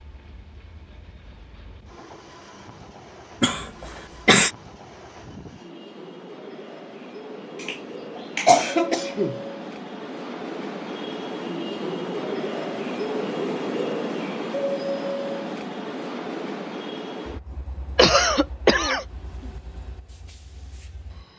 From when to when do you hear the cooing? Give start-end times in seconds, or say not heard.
not heard.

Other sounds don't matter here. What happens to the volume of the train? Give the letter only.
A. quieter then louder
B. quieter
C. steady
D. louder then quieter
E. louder
D.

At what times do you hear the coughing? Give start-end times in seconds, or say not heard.
3.4-4.5, 7.6-9.4, 17.9-19.1.